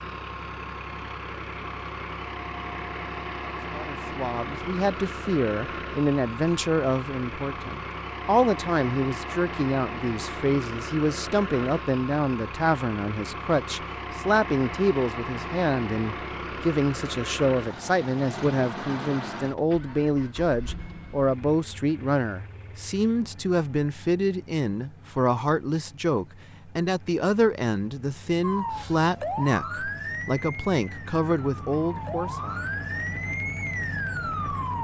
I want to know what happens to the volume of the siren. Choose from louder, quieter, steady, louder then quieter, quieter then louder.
quieter then louder.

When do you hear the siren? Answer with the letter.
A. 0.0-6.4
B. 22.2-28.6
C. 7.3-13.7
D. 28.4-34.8
D.